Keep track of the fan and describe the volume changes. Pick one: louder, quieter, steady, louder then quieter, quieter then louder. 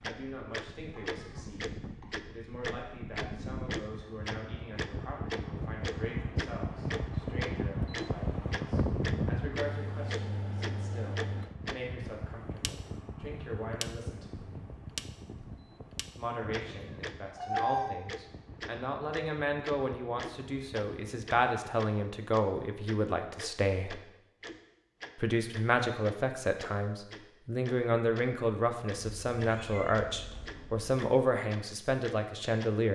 louder then quieter.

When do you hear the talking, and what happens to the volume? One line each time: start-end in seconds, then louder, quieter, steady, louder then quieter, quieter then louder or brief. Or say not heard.
0.0-14.7 steady
16.1-23.9 louder
25.1-32.9 steady.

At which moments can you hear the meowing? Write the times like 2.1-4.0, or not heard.
0.9-2.0, 16.6-17.9, 29.0-30.9.